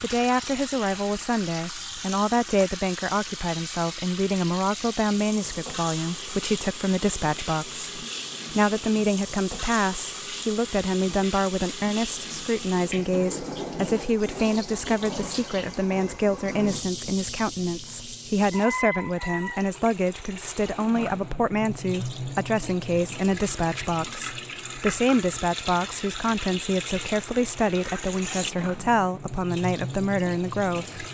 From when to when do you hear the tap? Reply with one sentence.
You can hear the tap from 0.0 to 31.0 s.